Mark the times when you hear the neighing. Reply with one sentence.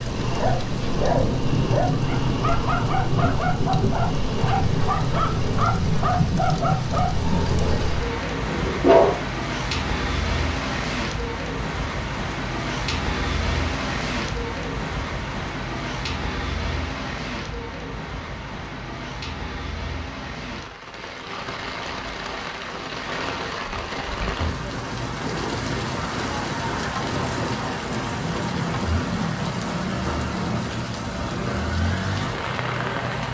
The neighing can't be heard in this clip.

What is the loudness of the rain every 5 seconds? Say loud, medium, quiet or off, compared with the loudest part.
loud, loud, loud, medium, medium, loud, loud.